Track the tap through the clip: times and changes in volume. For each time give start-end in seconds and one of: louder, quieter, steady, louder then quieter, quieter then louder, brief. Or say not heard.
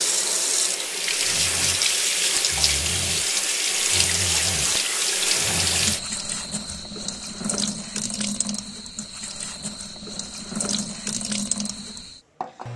0.0-12.7 quieter.